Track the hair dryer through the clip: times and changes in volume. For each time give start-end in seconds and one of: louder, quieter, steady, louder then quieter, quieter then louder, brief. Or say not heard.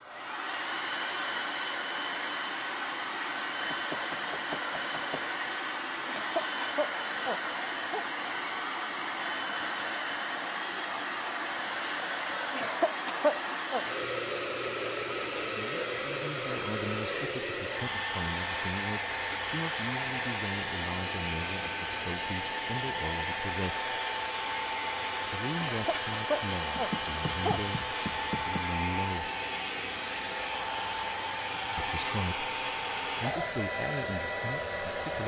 0.0-35.2 steady.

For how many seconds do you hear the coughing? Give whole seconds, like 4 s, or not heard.
5 s.